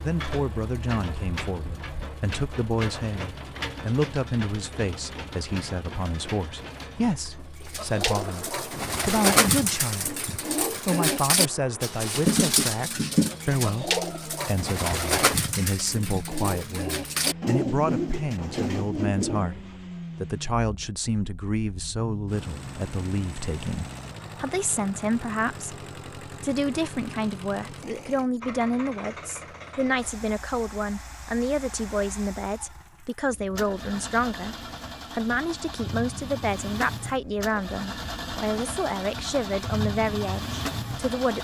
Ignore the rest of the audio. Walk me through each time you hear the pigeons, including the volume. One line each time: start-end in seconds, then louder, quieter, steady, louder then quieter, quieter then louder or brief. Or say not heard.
7.6-19.5 steady.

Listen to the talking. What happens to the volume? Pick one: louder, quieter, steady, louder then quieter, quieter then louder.
steady.